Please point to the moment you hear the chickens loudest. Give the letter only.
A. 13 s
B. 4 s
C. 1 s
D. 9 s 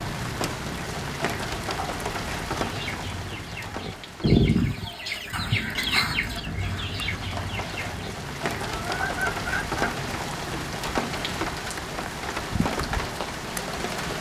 B.